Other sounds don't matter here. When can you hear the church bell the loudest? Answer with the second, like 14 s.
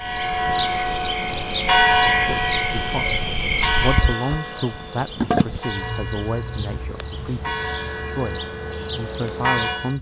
2 s.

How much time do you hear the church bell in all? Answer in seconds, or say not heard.
10 s.